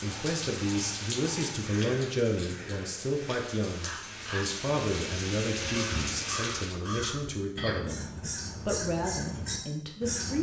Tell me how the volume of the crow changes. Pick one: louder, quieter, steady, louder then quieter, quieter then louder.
louder.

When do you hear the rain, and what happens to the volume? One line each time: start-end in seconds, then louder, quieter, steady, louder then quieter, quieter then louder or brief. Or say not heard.
0.0-6.8 quieter then louder.